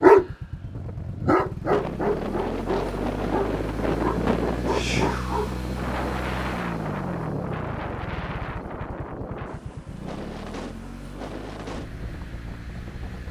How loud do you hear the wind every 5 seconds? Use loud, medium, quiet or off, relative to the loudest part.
loud, loud, medium.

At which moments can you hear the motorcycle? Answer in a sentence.
You can hear the motorcycle from 0.1 to 13.2 s.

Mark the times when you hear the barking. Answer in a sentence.
The barking can be heard from 0.0 to 5.5 s.